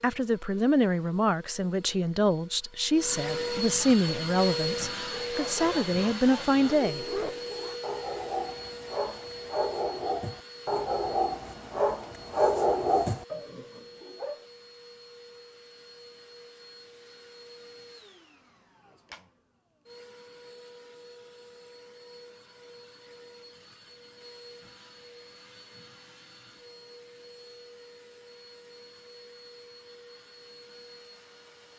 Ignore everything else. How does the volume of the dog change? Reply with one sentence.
The loudness of the dog goes up.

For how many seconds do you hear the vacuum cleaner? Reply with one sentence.
You can hear the vacuum cleaner for 32 seconds altogether.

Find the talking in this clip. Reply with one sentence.
The talking can be heard from 0.0 to 7.0 s.